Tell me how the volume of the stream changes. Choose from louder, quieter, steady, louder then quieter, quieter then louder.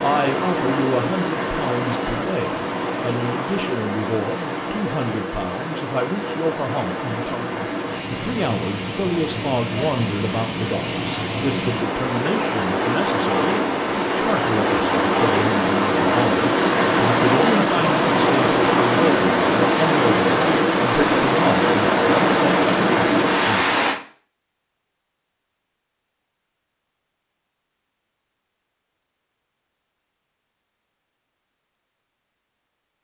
louder.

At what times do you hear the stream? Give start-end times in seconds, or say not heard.
0.0-24.0.